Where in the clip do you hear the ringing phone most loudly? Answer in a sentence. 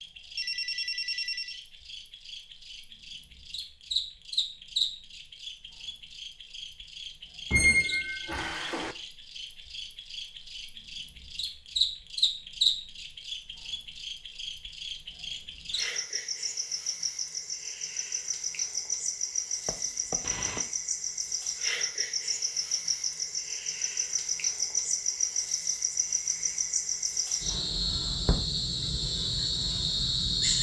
The volume of the ringing phone peaks at 1 second.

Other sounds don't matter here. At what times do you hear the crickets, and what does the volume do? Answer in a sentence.
You can hear the crickets from 0.0 to 30.5 s, getting louder.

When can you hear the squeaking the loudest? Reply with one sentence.
The volume of the squeaking peaks at 8 seconds.